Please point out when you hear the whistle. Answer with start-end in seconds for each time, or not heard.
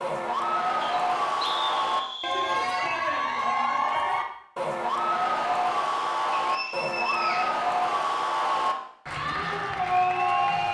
0.8-2.6, 6.3-7.5.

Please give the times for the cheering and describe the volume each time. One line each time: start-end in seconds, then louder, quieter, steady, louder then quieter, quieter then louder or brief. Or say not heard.
0.0-10.6 steady.